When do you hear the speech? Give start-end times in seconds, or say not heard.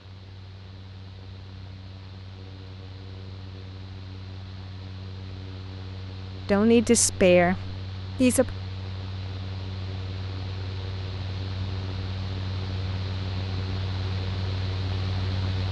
6.5-8.6.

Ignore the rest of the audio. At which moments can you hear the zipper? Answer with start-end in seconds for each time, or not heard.
not heard.